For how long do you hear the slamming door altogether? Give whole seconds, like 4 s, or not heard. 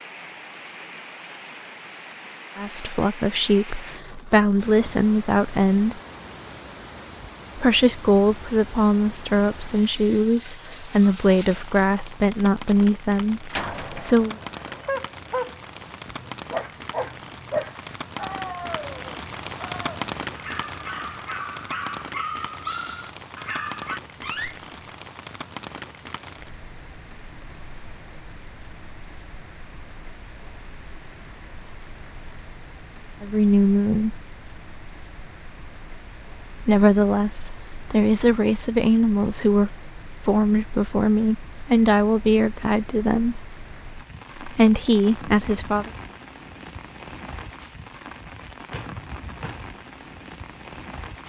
3 s.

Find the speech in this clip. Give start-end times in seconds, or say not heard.
2.5-6.0, 7.5-14.3, 33.2-34.2, 36.6-43.4, 44.4-45.9.